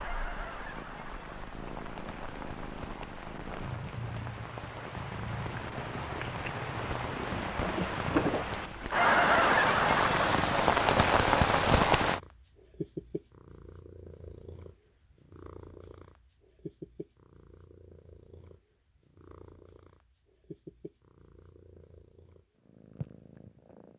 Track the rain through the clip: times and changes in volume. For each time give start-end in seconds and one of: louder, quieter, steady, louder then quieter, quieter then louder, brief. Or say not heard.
0.0-12.2 louder.